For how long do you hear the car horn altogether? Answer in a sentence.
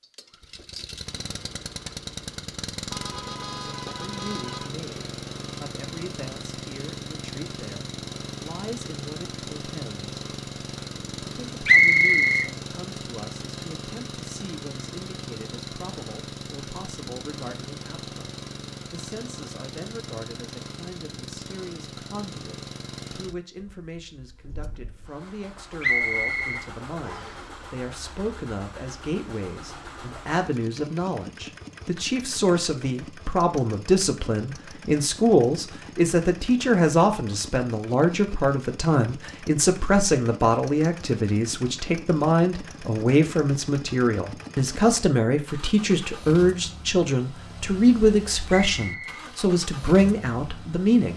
The car horn can be heard for 2 seconds in total.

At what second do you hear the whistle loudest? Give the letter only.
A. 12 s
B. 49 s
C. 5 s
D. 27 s
A.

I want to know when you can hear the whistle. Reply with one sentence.
You can hear the whistle from 11.7 to 12.5 s, from 25.8 to 27.4 s and from 48.5 to 49.2 s.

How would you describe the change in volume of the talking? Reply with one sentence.
The loudness of the talking goes up.